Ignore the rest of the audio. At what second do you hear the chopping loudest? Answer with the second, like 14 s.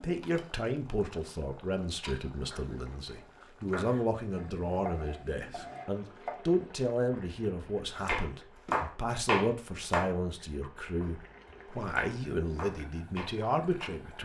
9 s.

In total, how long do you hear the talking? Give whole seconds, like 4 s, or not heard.
14 s.